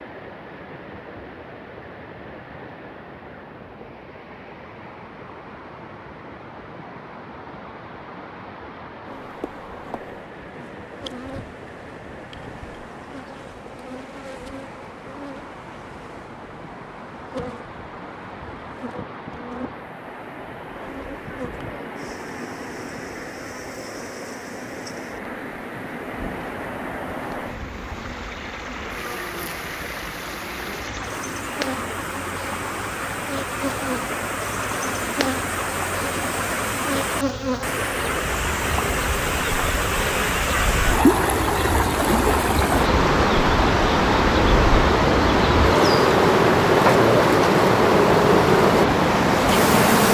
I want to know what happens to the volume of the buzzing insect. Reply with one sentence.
The loudness of the buzzing insect goes up.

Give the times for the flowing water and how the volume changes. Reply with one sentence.
You can hear the flowing water from 0.0 to 50.0 s, getting louder.